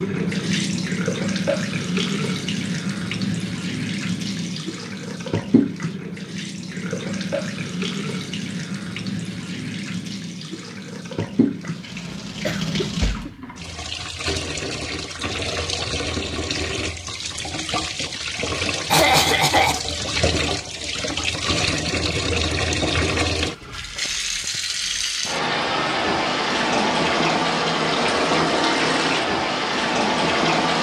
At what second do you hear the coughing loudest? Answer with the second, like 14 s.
19 s.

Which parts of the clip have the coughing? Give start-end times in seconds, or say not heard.
11.6-13.3, 18.9-19.8.